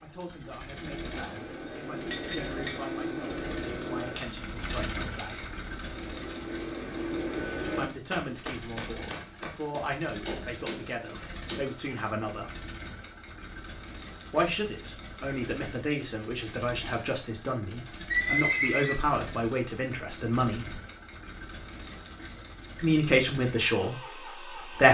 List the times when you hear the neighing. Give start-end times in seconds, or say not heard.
18.1-19.1.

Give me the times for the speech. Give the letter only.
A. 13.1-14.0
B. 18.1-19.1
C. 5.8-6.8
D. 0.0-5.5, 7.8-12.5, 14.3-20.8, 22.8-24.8
D.